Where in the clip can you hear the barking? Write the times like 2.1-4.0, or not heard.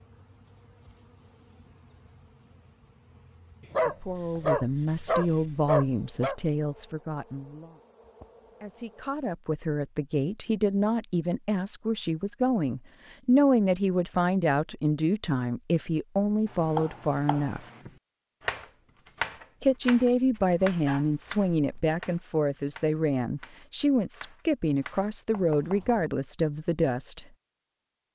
3.6-6.3, 20.4-21.9.